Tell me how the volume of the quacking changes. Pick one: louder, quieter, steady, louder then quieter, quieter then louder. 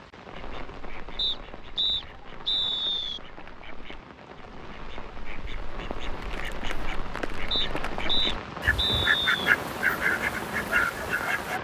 louder.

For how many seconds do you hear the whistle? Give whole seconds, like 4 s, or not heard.
4 s.